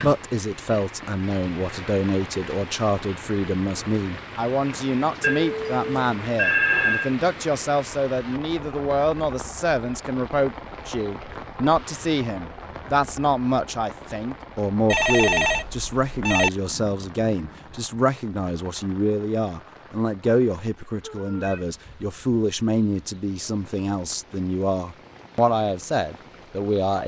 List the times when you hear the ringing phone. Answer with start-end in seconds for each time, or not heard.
5.2-7.1, 14.8-16.5, 21.0-21.6.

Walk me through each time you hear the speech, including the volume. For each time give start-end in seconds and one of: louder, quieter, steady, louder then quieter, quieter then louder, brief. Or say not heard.
0.0-27.0 steady.